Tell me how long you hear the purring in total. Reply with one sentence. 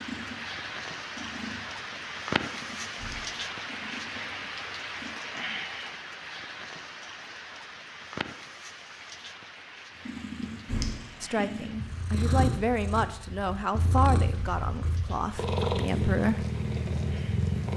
You can hear the purring for 13 seconds altogether.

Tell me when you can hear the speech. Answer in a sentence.
The speech can be heard from 11.2 to 16.4 s.